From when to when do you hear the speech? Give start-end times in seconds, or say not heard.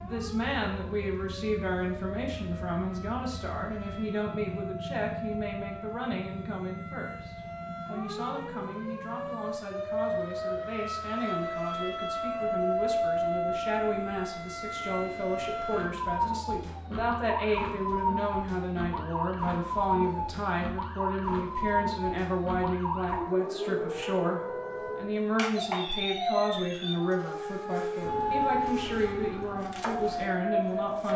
0.0-31.1.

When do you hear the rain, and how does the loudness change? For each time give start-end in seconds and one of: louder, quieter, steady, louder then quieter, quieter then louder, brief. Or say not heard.
not heard.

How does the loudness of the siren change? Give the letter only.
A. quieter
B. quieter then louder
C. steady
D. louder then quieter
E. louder
E.